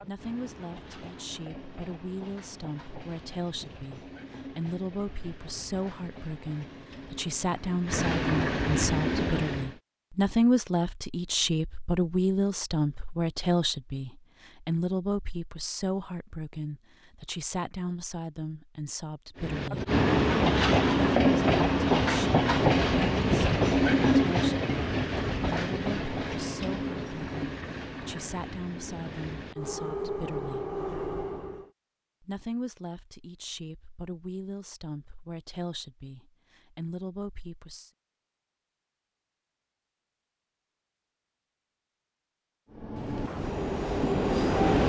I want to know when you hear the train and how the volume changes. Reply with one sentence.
The train can be heard from 0.0 to 9.8 s, getting louder; from 19.4 to 31.7 s, getting quieter; and briefly from 42.7 to 44.8 s.